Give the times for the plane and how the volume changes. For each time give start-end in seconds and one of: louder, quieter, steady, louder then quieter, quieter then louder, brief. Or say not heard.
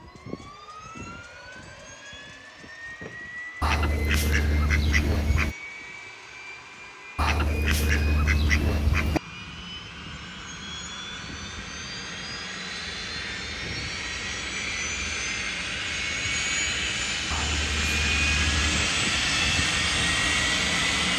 0.0-21.1 louder.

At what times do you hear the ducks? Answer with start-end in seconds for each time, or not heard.
3.6-5.5, 7.2-9.2, 17.3-18.9.